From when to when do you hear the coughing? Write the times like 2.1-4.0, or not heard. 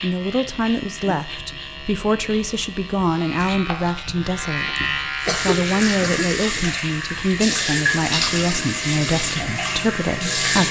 4.7-6.2.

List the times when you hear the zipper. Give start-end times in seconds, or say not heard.
not heard.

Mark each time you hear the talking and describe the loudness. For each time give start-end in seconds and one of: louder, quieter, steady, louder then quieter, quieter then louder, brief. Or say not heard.
0.0-10.6 steady.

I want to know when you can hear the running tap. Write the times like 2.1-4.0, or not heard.
5.2-10.6.